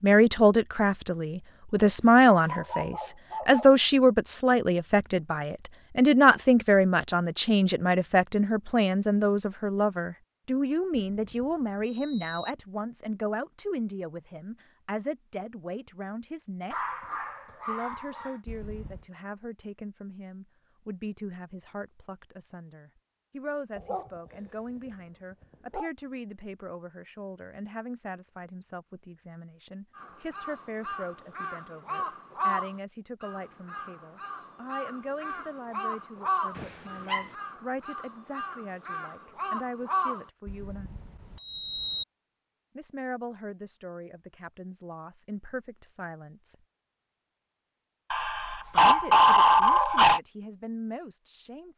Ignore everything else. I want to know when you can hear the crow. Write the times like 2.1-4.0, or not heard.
29.9-40.3.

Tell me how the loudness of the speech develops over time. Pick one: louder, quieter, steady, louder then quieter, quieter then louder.
quieter.